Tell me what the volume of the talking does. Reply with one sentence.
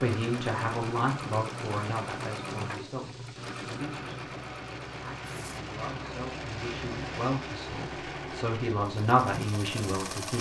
The loudness of the talking goes down, then up.